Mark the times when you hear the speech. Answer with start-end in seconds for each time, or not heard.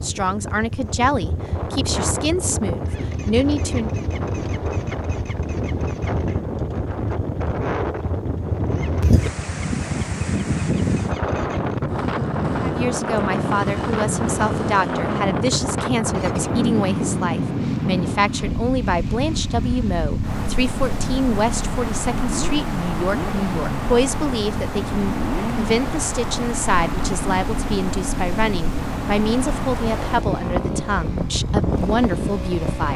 0.0-3.9, 12.6-32.9.